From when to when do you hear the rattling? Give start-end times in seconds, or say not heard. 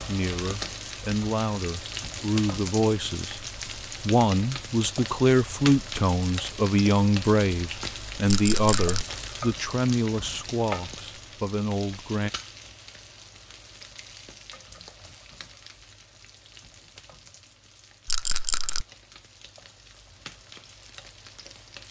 8.2-9.1, 18.1-18.9.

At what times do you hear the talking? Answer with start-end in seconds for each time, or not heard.
0.0-12.3.